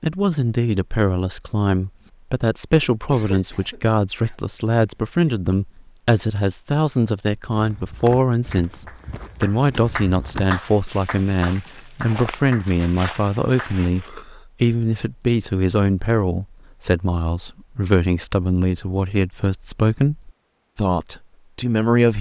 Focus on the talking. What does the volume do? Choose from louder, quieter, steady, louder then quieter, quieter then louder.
steady.